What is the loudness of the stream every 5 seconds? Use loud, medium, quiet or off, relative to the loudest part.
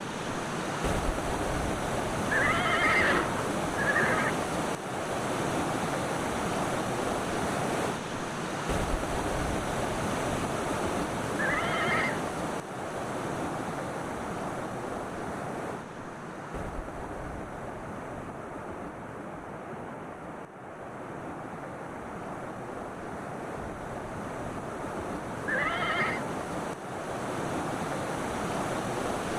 loud, loud, loud, medium, medium, loud.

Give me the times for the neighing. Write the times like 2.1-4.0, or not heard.
2.3-4.3, 11.3-12.2, 25.4-26.2.